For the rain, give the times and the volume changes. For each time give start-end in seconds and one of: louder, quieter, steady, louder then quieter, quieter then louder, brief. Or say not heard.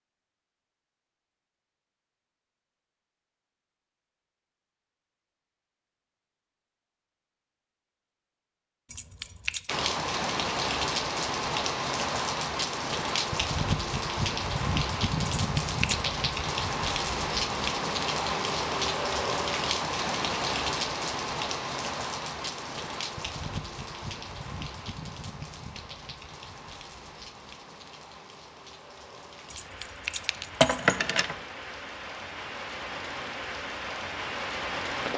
9.7-35.1 quieter then louder.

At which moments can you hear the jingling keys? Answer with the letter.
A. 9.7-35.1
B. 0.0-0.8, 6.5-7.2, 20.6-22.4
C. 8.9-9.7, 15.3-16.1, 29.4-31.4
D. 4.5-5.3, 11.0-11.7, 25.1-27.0
C.